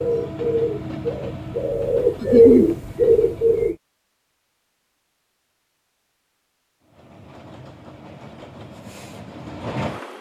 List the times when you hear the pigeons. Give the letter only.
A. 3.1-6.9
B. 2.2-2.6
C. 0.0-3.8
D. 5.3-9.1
C.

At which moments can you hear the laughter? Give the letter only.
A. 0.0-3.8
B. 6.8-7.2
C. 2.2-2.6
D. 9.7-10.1
C.